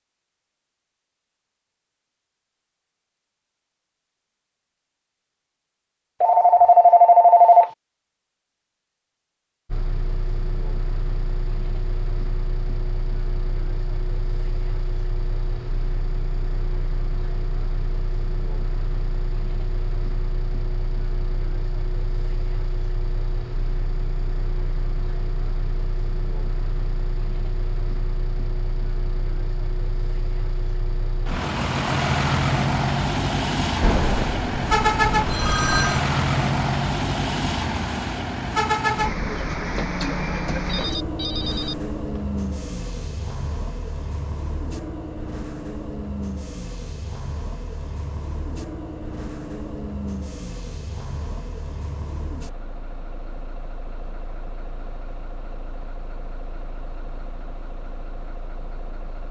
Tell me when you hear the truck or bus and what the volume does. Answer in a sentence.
The truck or bus can be heard from 9.7 to 59.2 s, getting louder then quieter.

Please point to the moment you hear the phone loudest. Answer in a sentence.
The volume of the phone peaks at 7 seconds.